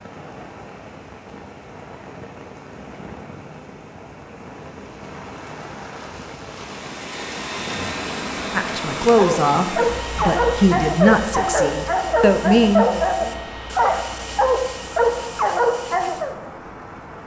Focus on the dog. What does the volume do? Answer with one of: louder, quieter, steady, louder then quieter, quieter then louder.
steady.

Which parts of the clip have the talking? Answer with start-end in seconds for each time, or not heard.
8.6-12.8.